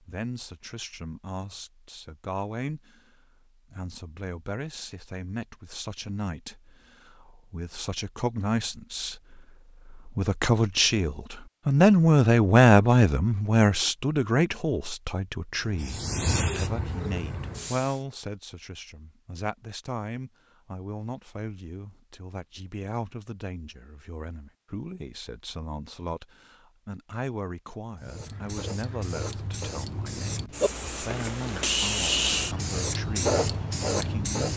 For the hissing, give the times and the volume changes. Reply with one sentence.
The hissing can be heard briefly from 15.6 to 18.0 s; and from 28.0 to 34.5 s, getting louder.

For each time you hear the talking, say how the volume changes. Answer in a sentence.
You can hear the talking from 0.0 to 34.5 s, getting louder then quieter.